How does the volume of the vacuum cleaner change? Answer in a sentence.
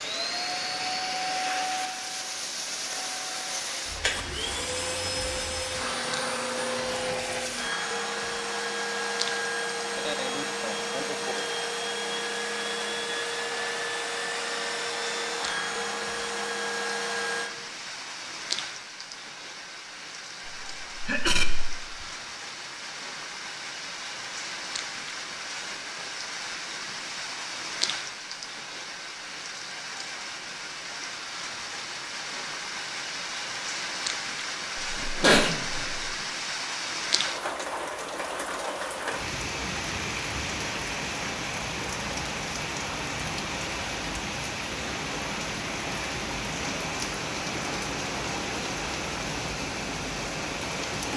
The loudness of the vacuum cleaner stays about the same.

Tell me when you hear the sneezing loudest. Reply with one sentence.
The loudest moment of the sneezing is at 35 seconds.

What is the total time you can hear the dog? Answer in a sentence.
The dog can't be heard in this clip.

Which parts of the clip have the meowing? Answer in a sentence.
You can't hear the meowing here.